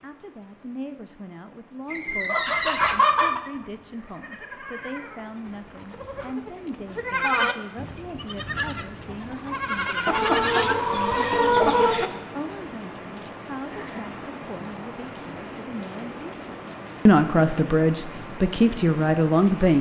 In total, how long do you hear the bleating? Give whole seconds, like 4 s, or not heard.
9 s.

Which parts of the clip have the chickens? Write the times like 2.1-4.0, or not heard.
1.9-3.4, 10.1-12.1.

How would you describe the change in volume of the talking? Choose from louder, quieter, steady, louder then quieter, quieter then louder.
louder.